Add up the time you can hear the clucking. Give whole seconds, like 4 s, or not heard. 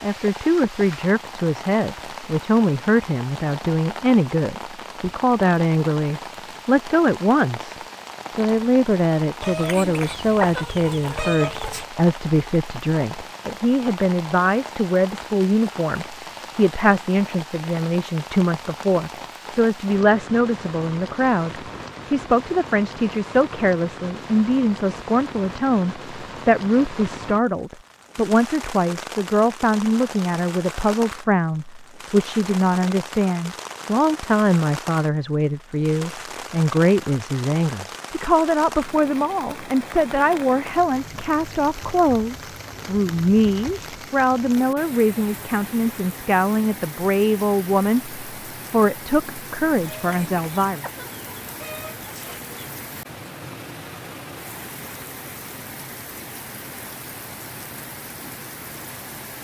5 s.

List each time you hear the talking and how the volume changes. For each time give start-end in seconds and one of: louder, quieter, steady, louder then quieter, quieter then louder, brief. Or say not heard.
0.0-50.9 steady.